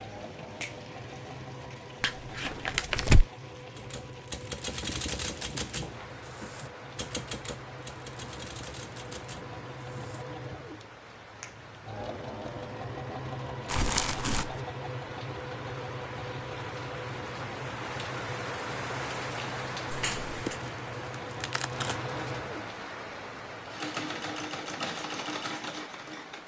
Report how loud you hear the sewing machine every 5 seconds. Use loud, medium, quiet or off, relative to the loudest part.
medium, medium, loud, loud, loud, loud.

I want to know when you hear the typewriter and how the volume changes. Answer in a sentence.
You can hear the typewriter from 3.8 to 10.8 s, getting quieter.